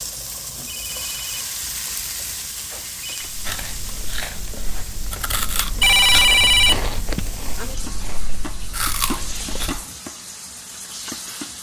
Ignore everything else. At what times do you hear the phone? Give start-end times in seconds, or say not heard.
0.7-3.3, 5.8-7.2.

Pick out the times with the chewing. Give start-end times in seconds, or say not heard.
3.2-9.8.